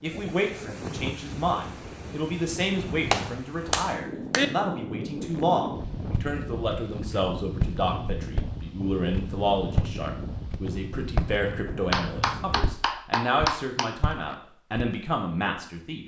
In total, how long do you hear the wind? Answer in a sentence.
You can hear the wind for 13 seconds altogether.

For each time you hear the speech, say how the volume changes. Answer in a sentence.
You can hear the speech from 0.0 to 16.0 s, at a steady volume.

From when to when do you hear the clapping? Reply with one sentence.
The clapping can be heard from 3.1 to 4.5 s and from 11.9 to 13.9 s.